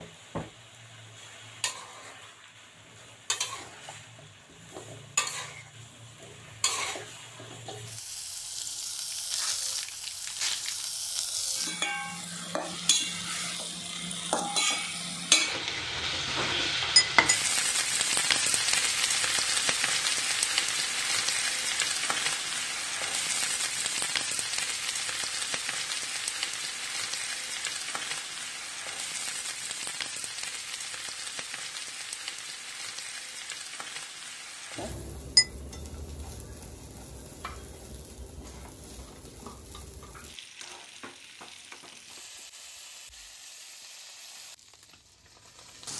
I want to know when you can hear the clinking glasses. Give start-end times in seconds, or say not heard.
16.4-17.4, 34.8-35.5.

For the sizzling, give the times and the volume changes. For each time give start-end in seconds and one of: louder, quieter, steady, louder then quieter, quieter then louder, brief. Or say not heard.
0.0-45.9 louder then quieter.